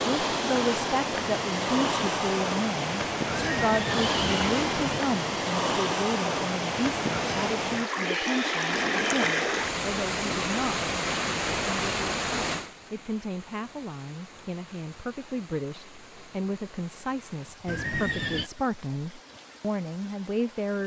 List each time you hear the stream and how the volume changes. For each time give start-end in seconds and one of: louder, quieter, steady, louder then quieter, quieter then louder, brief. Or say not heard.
0.0-20.8 quieter.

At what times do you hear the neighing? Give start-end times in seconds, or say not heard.
3.3-5.0, 8.0-9.4, 17.6-18.5.